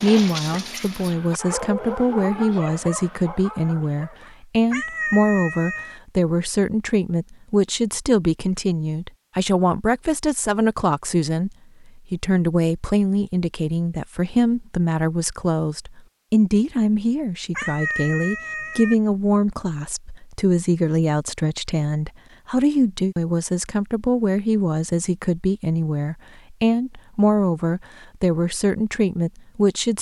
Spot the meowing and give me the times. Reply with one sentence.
You can hear the meowing from 4.7 to 6.0 s and from 17.6 to 18.9 s.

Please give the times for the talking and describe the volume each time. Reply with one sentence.
The talking can be heard from 0.0 to 29.9 s, at a steady volume.